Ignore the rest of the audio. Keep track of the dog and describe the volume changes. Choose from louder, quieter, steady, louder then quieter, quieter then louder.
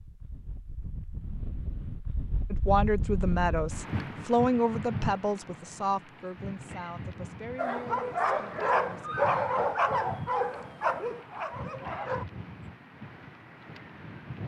quieter.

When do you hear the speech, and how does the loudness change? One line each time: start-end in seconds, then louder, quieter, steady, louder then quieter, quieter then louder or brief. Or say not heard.
2.5-9.7 quieter.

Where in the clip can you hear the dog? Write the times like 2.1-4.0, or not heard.
7.5-12.2.